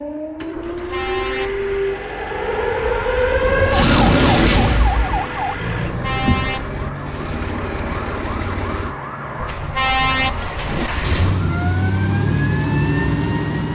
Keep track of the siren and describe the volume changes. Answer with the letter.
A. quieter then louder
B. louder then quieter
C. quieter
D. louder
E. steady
B.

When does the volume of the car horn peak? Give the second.
10 s.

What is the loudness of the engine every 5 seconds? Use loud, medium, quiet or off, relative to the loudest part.
medium, medium, loud.